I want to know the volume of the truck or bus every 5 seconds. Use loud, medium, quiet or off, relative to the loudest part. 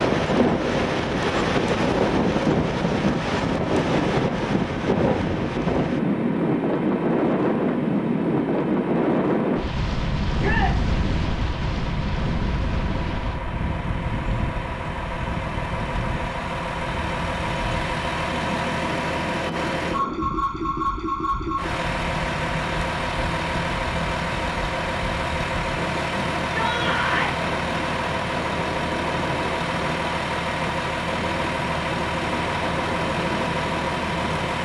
off, medium, medium, loud, loud, loud, loud.